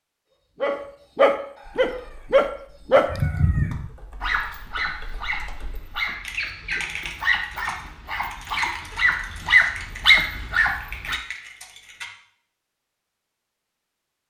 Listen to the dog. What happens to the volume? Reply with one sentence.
The volume of the dog goes down, then up.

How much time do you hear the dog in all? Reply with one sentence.
The dog can be heard for 11 seconds in total.